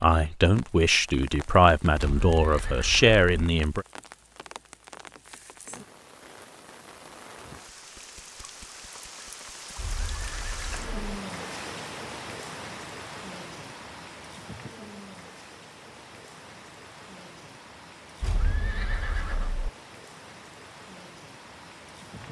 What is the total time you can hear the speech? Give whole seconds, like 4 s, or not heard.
4 s.